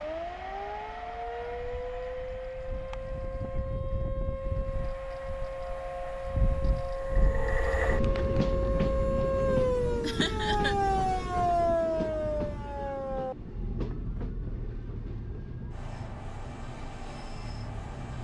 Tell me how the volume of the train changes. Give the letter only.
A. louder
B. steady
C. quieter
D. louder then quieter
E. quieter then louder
D.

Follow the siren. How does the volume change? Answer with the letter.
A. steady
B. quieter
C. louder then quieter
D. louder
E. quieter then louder
C.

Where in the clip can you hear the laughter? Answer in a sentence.
The laughter can be heard from 10.0 to 10.8 s.